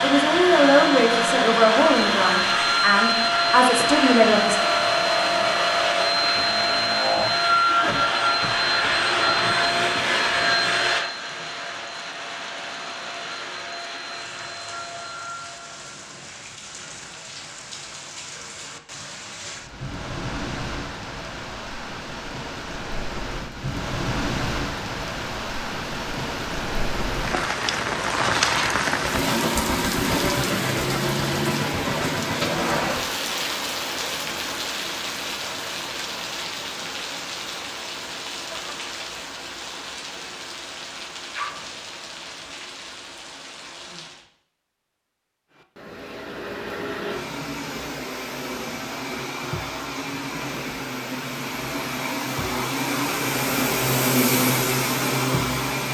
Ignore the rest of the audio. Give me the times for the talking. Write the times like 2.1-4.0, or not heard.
0.0-4.5.